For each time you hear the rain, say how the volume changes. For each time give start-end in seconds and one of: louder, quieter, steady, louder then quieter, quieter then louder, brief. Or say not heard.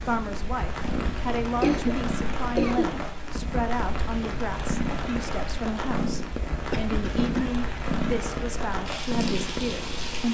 0.0-10.2 steady.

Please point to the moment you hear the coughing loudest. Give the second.
2 s.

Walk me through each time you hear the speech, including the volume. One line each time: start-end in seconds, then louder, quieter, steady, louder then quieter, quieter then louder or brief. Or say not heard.
0.0-10.2 steady.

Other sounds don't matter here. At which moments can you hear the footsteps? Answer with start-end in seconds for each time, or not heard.
not heard.